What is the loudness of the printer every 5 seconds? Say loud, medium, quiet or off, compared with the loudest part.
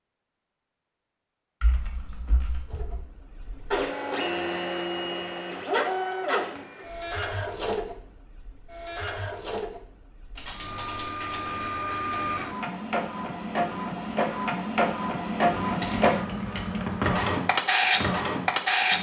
medium, medium, medium, loud.